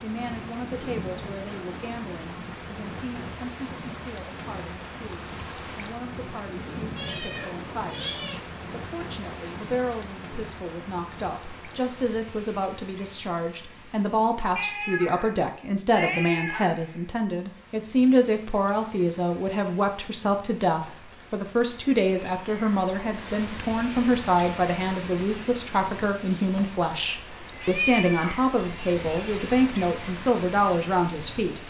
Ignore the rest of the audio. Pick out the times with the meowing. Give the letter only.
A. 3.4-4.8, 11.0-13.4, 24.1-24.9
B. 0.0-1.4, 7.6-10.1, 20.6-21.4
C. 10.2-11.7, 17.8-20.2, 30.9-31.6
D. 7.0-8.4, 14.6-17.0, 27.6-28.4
D.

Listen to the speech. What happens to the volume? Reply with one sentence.
The volume of the speech goes up.